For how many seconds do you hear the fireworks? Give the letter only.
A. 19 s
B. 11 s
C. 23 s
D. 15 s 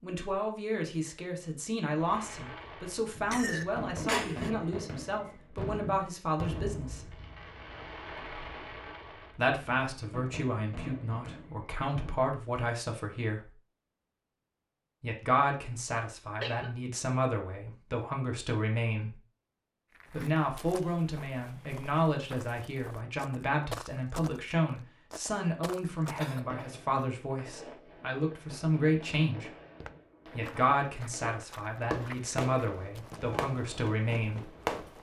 A.